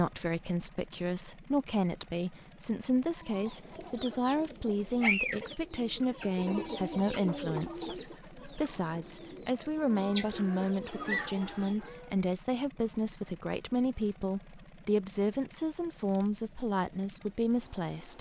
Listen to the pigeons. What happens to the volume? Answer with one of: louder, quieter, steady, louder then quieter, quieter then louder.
quieter then louder.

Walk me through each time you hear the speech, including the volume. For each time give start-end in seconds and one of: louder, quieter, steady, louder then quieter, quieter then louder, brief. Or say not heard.
0.0-18.1 steady.